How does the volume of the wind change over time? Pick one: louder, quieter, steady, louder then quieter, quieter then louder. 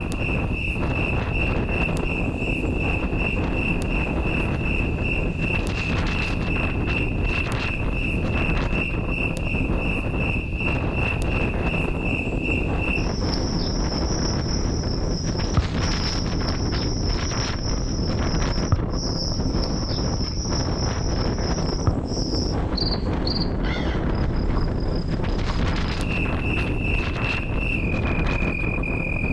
steady.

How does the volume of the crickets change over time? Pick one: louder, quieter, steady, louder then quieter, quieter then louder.
steady.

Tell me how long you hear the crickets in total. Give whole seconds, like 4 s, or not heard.
29 s.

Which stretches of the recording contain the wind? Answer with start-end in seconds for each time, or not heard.
0.0-29.2.